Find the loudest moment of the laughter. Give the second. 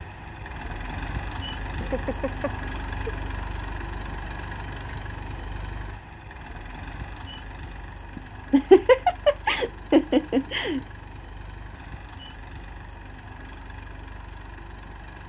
9 s.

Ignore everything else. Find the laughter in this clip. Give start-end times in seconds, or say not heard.
1.8-3.1, 8.2-10.8.